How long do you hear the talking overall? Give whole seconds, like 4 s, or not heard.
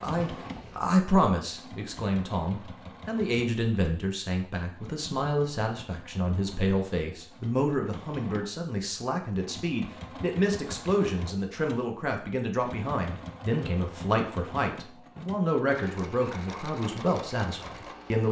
18 s.